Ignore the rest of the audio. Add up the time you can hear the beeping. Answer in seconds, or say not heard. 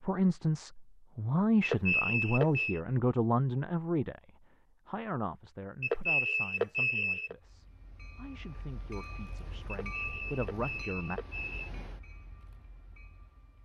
5 s.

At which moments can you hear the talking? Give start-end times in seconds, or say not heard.
0.0-11.2.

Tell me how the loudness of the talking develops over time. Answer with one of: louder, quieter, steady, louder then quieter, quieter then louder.
quieter then louder.